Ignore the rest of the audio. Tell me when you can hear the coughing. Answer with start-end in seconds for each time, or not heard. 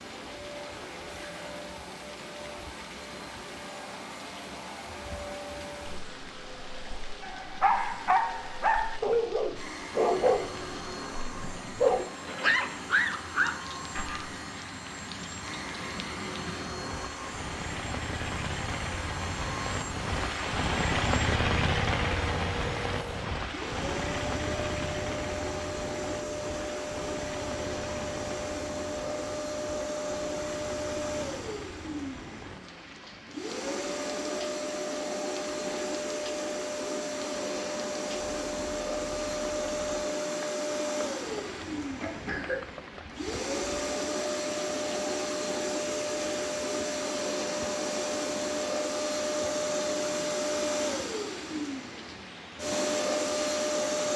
41.2-42.6.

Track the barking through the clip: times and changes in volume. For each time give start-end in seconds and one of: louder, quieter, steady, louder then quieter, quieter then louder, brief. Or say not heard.
7.2-14.3 steady.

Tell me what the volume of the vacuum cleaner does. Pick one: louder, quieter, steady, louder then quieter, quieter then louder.
louder.